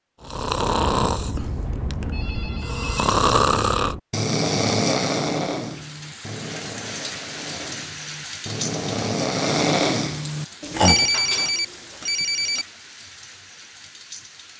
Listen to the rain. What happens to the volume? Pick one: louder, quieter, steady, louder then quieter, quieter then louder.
quieter.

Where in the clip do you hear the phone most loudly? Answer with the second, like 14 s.
11 s.